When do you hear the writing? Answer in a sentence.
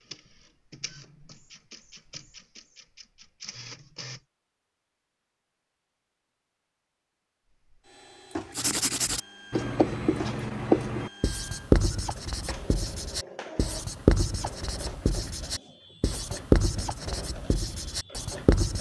You can hear the writing from 8.6 to 18.7 s.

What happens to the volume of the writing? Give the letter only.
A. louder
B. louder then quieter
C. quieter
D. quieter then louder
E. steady
D.